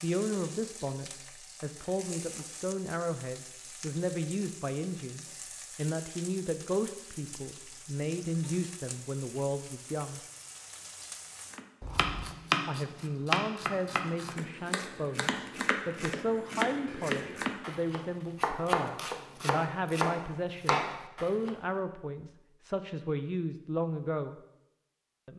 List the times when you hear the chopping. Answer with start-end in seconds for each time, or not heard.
11.5-21.6.